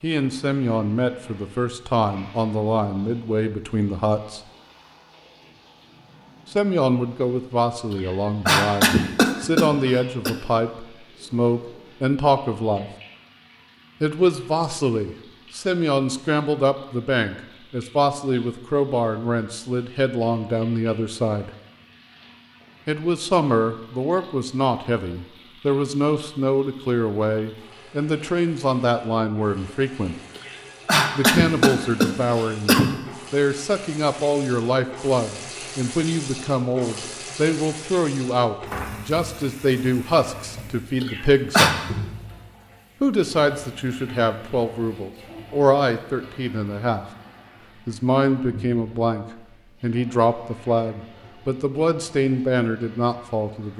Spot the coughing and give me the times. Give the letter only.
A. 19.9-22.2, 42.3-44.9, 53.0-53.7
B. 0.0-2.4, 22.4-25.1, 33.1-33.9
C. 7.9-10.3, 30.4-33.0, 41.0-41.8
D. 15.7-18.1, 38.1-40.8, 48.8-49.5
C.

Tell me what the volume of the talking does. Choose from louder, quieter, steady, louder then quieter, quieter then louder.
steady.